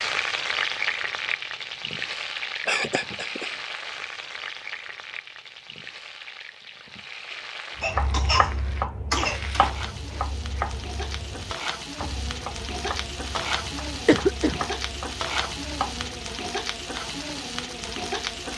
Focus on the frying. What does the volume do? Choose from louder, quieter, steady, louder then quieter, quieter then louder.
quieter then louder.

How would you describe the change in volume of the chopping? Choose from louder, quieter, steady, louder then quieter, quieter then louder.
quieter.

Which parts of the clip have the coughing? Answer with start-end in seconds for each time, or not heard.
2.6-3.5, 7.8-9.7, 14.1-14.7.